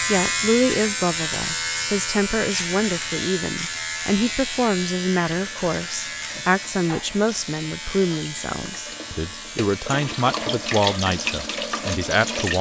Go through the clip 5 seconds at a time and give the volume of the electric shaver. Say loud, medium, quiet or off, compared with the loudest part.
loud, medium, quiet.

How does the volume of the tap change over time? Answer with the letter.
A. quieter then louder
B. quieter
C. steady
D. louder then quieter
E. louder
E.